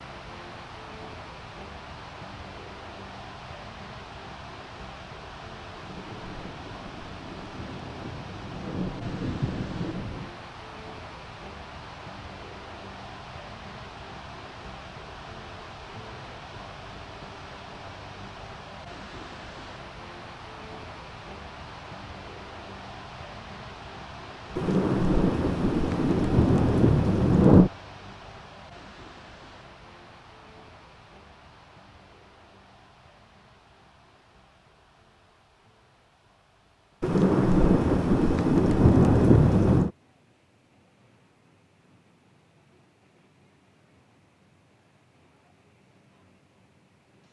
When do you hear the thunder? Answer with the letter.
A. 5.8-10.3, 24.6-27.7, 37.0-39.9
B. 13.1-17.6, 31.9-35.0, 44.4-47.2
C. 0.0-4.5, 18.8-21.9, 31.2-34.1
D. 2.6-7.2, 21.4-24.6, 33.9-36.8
A.